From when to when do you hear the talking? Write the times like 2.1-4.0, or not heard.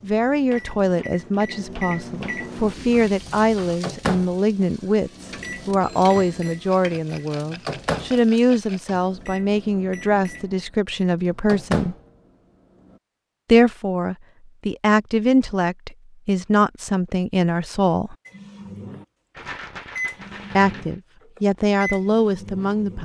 0.0-11.9, 13.4-18.1, 20.6-22.9.